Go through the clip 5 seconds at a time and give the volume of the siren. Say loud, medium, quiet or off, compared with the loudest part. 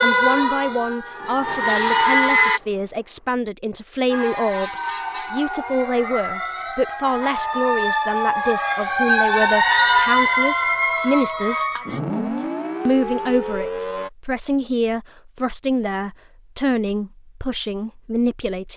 loud, loud, loud, off.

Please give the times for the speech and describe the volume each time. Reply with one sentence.
The speech can be heard from 0.0 to 18.7 s, at a steady volume.